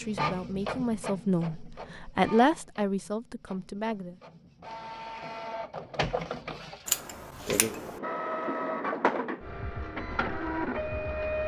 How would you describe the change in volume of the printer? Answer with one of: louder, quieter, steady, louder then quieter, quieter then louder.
quieter then louder.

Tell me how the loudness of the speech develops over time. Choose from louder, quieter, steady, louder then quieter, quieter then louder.
louder then quieter.